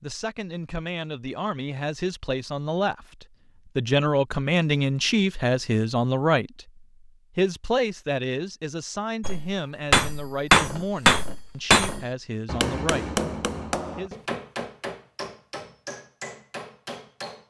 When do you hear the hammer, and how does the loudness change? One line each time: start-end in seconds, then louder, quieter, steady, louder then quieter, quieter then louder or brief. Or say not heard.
9.2-17.4 quieter.